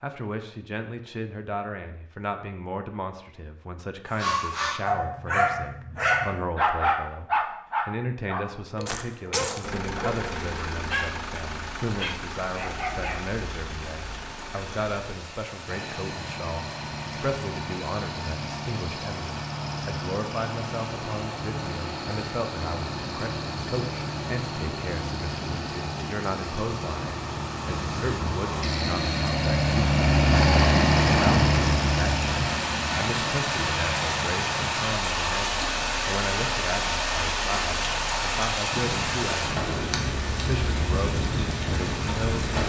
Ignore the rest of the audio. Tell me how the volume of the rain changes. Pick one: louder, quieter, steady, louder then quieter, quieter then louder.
louder.